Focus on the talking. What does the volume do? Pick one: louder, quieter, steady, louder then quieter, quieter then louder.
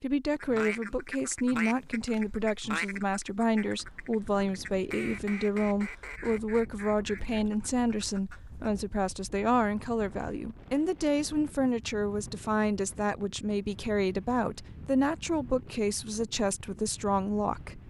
steady.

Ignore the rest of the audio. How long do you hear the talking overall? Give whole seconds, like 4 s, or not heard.
18 s.